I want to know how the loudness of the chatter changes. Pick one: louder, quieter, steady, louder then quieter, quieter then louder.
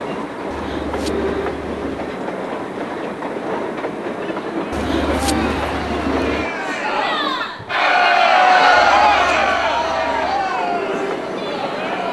louder then quieter.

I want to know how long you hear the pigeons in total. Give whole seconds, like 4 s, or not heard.
5 s.